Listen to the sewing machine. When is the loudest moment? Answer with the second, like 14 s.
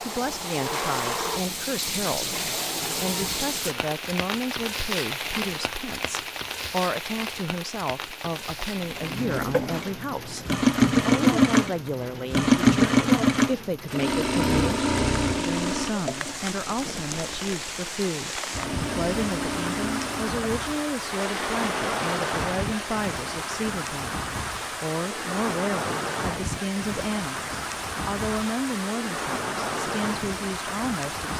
13 s.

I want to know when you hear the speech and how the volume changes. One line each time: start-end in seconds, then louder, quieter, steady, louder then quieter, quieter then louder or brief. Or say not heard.
0.0-31.3 steady.